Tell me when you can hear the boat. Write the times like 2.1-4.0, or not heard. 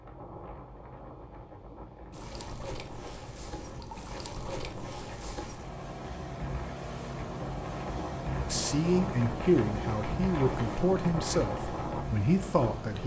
2.1-13.0.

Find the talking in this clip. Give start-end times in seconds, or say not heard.
8.4-13.0.